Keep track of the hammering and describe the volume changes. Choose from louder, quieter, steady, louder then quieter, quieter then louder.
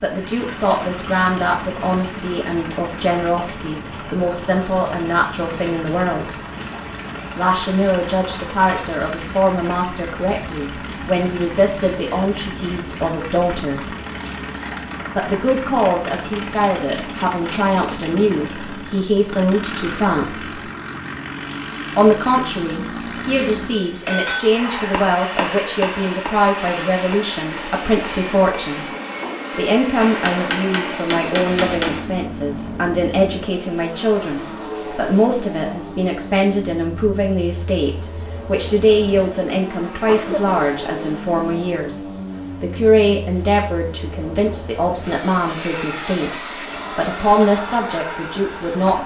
quieter then louder.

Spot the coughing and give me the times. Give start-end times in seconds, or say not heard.
40.0-40.6.